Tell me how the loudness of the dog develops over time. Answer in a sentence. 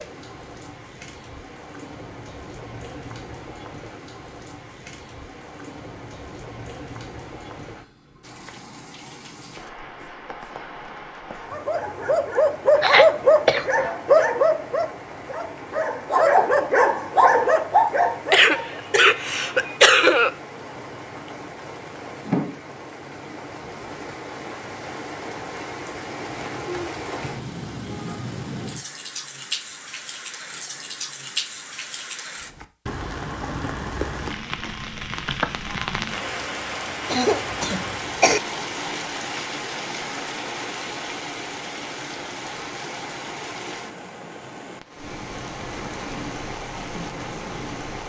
The volume of the dog goes down, then up.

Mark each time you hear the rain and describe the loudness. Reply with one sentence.
The rain can be heard from 0.0 to 48.0 s, getting louder.